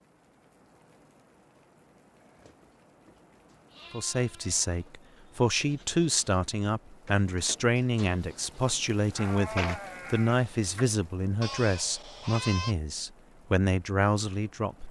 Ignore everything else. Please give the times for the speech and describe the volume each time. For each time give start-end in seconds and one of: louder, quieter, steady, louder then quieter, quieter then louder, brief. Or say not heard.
3.9-14.8 steady.